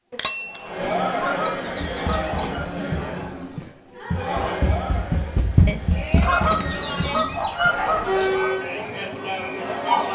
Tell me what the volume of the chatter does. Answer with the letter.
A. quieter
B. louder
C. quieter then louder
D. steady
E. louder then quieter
C.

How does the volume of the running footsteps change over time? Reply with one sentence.
The volume of the running footsteps goes up, then down.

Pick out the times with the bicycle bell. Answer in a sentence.
You can hear the bicycle bell from 0.1 to 0.9 s and from 5.7 to 7.2 s.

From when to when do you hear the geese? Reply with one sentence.
You can hear the geese from 1.1 to 2.6 s and from 6.2 to 8.5 s.